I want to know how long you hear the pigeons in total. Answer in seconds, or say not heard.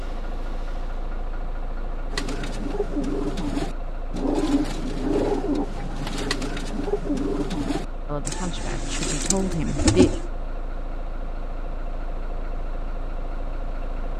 8 s.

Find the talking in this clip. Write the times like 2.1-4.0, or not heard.
8.1-10.1.